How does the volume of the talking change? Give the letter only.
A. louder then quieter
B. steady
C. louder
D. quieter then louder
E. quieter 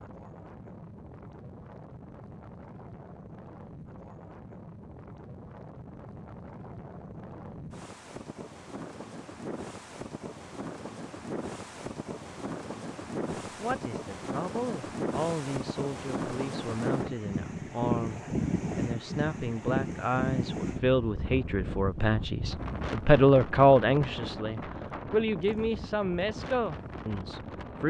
A.